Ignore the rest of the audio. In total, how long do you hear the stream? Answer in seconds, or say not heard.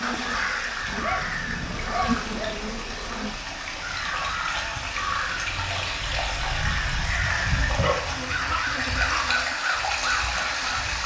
11 s.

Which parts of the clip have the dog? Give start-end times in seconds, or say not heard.
0.8-2.6, 7.8-9.3.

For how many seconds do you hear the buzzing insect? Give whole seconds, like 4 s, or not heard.
6 s.